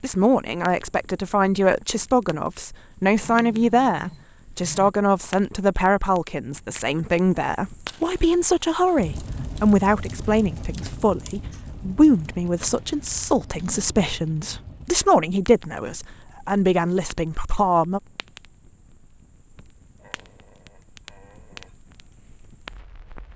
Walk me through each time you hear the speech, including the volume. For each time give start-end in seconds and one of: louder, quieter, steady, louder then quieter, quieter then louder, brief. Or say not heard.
0.0-18.0 steady.